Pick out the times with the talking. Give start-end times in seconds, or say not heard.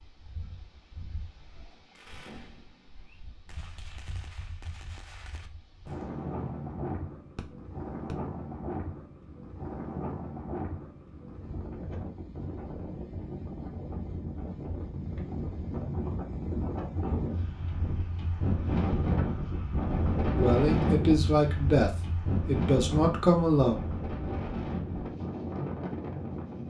20.4-23.8.